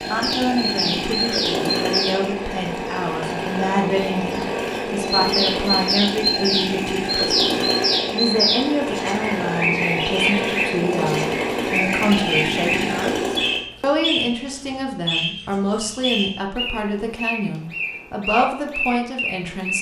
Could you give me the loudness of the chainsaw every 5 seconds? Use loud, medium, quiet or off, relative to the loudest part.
loud, loud, loud, off.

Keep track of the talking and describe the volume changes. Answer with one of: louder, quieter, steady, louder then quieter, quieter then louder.
steady.